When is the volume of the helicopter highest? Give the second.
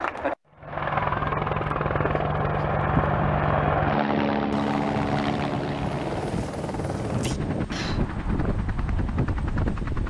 3 s.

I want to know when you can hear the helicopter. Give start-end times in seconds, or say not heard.
0.0-10.0.